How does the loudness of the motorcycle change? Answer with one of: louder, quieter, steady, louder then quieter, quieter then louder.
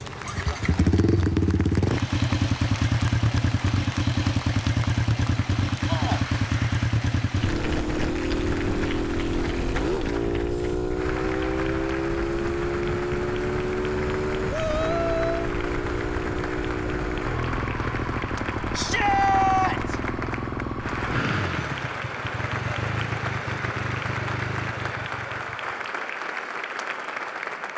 quieter.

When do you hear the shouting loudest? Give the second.
19 s.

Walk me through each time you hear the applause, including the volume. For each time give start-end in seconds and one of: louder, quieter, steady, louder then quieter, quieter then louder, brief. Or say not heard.
0.0-27.7 louder.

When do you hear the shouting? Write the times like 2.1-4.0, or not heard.
5.8-6.2, 14.5-15.5, 18.7-20.0.